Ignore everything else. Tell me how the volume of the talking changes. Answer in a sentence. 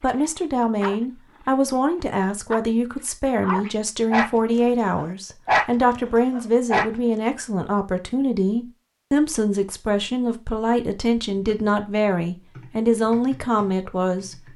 The loudness of the talking stays about the same.